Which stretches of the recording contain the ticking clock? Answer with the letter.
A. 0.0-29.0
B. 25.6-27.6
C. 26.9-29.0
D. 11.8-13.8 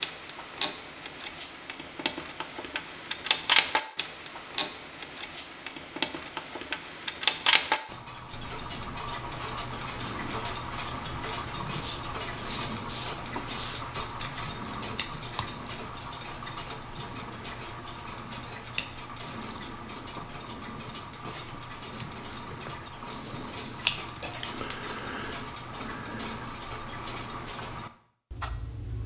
A.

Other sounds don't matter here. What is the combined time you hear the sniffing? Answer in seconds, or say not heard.
2 s.